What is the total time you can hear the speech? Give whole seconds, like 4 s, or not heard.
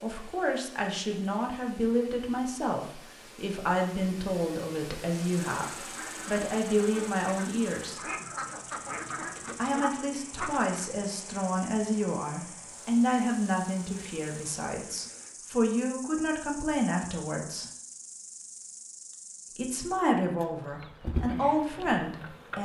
19 s.